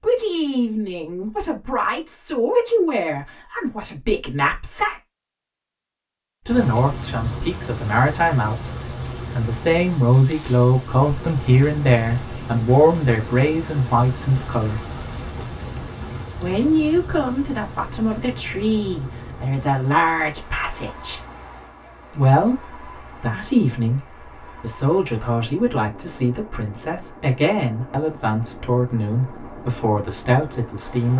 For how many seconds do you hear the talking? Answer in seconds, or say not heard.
27 s.